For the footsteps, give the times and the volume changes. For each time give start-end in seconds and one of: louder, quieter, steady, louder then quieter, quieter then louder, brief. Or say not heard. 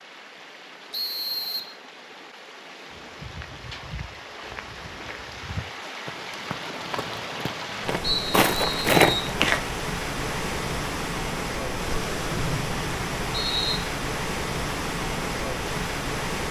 2.9-9.7 louder.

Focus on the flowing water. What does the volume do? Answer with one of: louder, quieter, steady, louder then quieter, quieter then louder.
louder.